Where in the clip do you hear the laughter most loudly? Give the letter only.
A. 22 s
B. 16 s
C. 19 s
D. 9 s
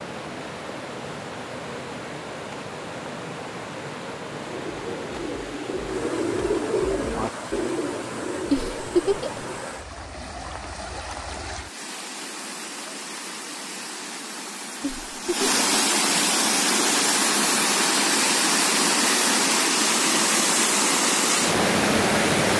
D.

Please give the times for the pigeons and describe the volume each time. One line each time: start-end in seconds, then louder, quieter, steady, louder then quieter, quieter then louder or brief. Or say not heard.
4.2-9.7 louder then quieter.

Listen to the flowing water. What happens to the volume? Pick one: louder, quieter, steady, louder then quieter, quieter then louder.
louder.